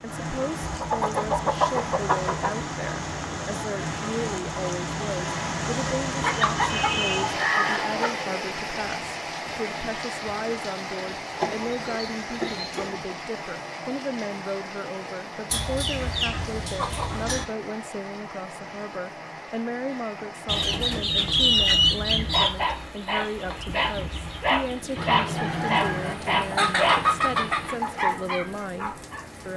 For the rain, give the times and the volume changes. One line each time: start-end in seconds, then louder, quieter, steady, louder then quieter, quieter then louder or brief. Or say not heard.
0.0-29.5 quieter.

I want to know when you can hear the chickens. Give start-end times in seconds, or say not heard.
0.6-2.5, 6.2-8.2, 11.4-13.1, 15.5-17.4, 20.4-22.5, 24.9-27.8.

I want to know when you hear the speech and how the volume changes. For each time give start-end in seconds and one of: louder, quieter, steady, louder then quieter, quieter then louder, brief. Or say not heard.
0.0-29.5 steady.